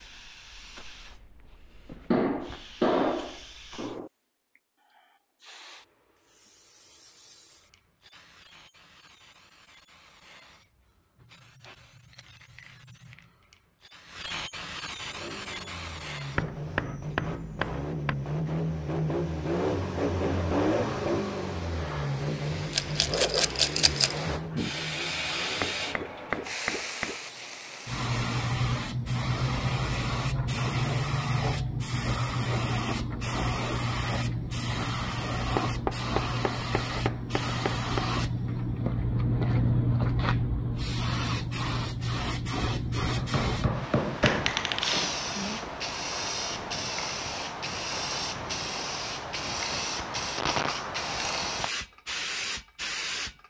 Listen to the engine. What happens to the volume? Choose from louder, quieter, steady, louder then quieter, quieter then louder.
louder then quieter.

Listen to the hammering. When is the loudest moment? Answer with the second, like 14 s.
3 s.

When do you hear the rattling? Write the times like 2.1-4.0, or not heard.
22.7-24.2.